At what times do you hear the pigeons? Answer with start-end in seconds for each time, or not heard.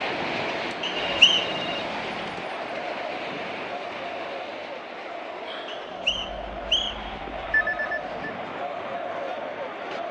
not heard.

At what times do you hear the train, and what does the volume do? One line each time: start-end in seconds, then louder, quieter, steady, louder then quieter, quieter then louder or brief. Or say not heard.
0.0-10.0 quieter.